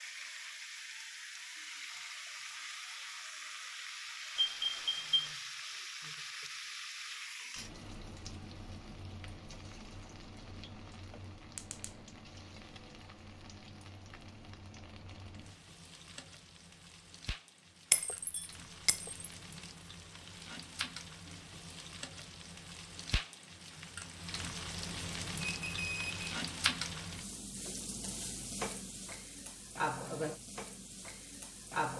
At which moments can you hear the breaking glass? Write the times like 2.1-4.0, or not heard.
17.9-19.3.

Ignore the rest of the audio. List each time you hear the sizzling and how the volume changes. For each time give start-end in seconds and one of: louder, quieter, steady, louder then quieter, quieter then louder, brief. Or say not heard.
0.0-31.9 quieter then louder.